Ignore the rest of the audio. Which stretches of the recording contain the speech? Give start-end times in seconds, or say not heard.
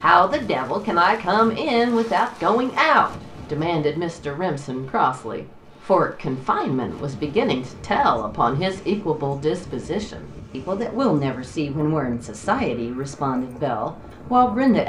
0.0-14.8.